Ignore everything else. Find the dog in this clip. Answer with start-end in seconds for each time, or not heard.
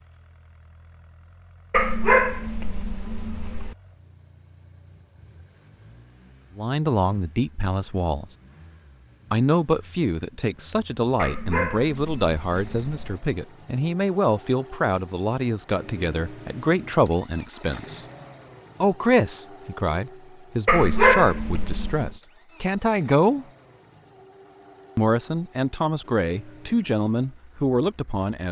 1.7-3.8, 11.2-13.2, 20.6-22.1.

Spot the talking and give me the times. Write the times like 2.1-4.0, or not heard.
6.5-8.3, 9.3-18.1, 18.8-23.4, 24.9-28.4.